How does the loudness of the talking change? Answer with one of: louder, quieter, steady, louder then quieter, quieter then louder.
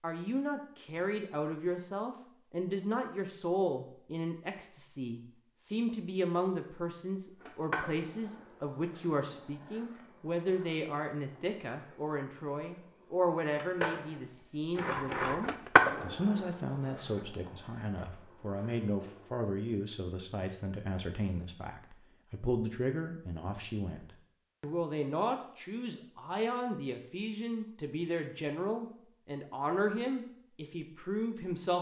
steady.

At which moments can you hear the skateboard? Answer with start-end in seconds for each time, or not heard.
7.2-19.4.